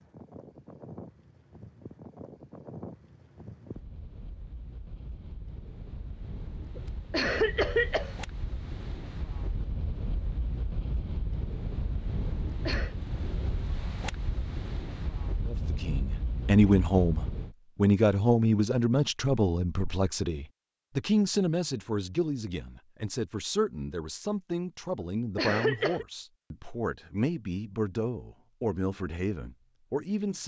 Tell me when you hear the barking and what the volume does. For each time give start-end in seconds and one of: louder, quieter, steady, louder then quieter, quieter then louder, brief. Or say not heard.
not heard.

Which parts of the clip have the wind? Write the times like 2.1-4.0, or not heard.
0.0-17.6.